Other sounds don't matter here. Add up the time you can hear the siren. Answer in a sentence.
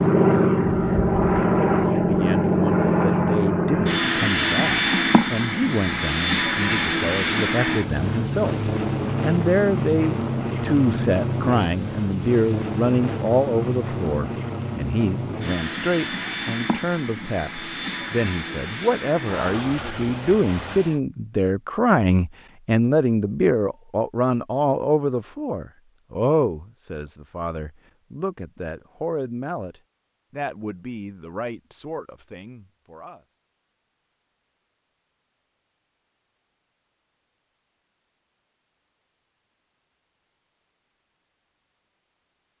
The siren can't be heard in this clip.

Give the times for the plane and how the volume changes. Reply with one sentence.
You can hear the plane from 0.0 to 21.0 s, getting quieter.